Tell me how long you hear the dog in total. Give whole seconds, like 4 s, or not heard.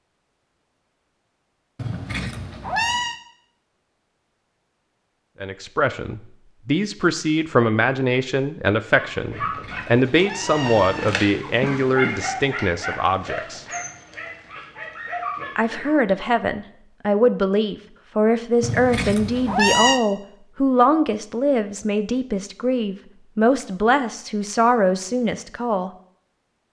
7 s.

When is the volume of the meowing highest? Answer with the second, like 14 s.
20 s.